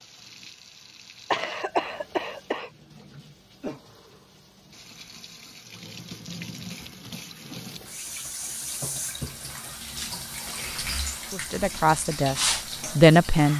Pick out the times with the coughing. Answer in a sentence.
The coughing can be heard from 1.3 to 2.7 s.